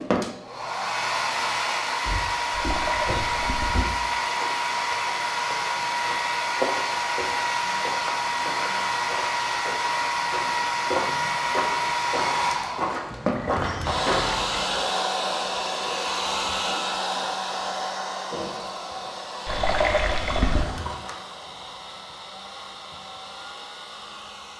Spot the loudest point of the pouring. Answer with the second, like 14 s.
20 s.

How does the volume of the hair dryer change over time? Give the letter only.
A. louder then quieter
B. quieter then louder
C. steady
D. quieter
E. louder
D.